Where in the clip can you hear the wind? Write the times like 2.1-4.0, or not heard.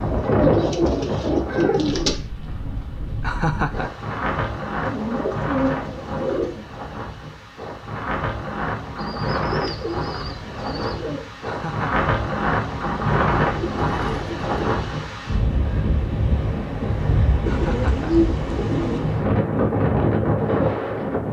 0.0-21.2.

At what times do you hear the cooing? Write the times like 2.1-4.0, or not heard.
0.1-2.1, 4.8-6.7, 8.9-11.2, 12.9-14.9, 17.4-19.1.